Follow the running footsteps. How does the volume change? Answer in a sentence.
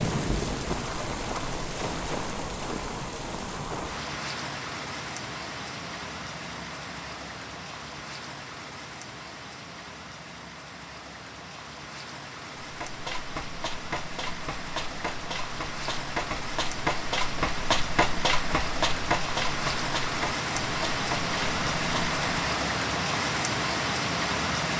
The volume of the running footsteps goes up, then down.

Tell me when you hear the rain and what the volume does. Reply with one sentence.
You can hear the rain from 0.0 to 24.7 s, getting quieter then louder.